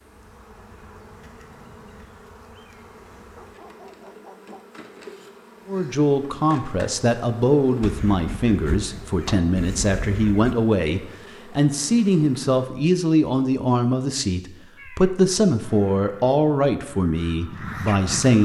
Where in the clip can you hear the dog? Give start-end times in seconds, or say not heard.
3.4-4.8.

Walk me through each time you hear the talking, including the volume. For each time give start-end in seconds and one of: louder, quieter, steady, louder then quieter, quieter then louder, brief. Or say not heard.
5.7-18.4 steady.